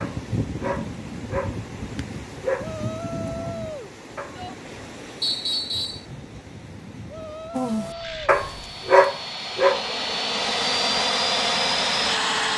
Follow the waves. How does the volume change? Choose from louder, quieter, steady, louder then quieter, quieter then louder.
quieter.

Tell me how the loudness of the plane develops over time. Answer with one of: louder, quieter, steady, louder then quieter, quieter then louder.
louder.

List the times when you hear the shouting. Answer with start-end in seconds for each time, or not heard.
2.6-4.5, 7.0-8.2.